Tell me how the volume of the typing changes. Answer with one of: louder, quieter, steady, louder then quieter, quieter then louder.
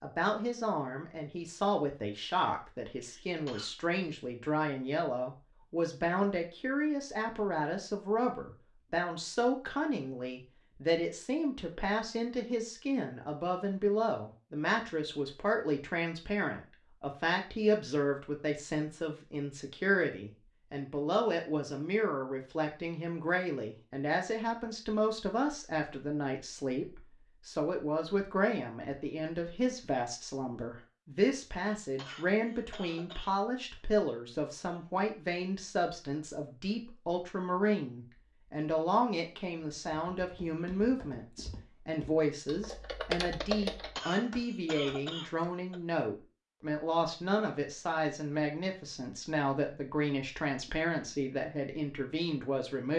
louder then quieter.